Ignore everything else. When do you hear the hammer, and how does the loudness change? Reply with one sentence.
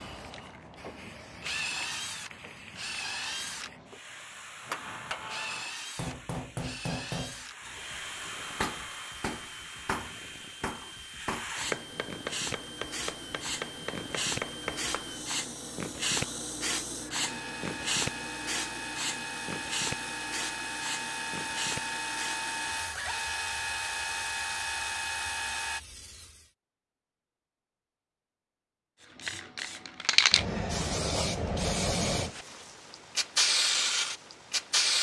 You can hear the hammer from 4.6 to 15.2 s, at a steady volume.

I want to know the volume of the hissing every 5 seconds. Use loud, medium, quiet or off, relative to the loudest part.
quiet, quiet, medium, medium, quiet, quiet, loud.